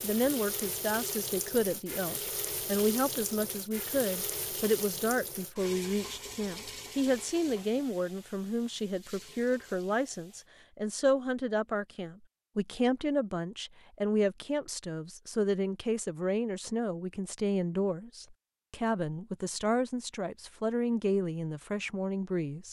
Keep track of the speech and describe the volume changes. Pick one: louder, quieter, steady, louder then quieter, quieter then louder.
steady.